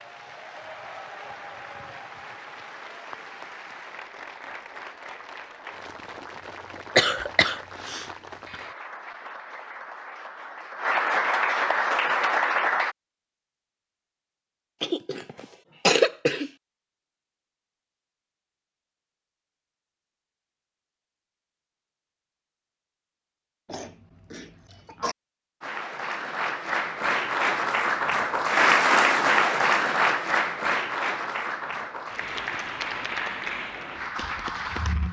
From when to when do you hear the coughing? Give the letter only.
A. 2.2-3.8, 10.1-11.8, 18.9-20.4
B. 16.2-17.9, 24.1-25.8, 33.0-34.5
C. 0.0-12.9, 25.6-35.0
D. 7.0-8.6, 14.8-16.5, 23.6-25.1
D.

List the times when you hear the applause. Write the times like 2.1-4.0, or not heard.
0.0-12.9, 25.6-35.0.